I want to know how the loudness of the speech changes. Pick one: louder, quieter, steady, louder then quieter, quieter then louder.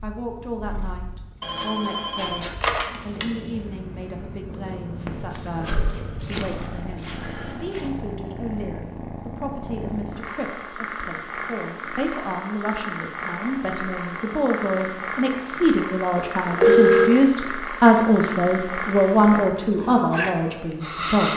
louder.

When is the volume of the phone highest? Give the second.
17 s.